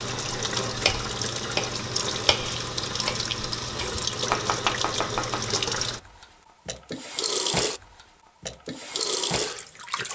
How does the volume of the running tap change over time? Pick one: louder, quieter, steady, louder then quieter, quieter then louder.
steady.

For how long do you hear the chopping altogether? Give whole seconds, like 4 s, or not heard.
5 s.